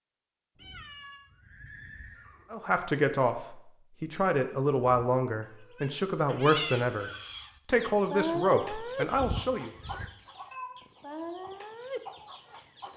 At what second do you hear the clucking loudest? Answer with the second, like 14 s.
8 s.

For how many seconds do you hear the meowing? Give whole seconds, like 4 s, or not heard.
2 s.